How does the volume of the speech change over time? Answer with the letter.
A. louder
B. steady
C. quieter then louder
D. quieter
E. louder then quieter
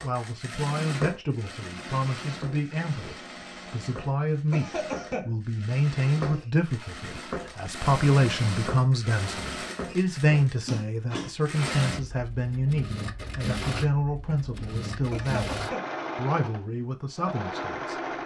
E.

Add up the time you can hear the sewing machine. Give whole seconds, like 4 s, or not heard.
18 s.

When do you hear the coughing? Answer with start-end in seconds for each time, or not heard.
4.5-5.3, 15.1-15.8.